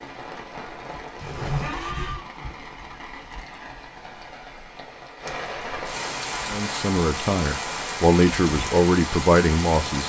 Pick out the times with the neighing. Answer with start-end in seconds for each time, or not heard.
1.2-2.2.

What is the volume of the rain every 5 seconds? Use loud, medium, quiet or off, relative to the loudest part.
medium, loud.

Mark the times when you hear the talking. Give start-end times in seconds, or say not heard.
6.5-10.0.